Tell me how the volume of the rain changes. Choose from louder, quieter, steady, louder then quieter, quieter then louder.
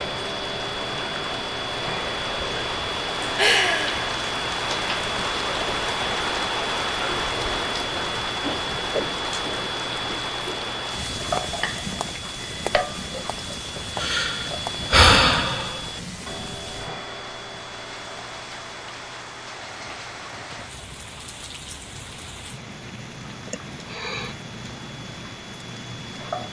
quieter.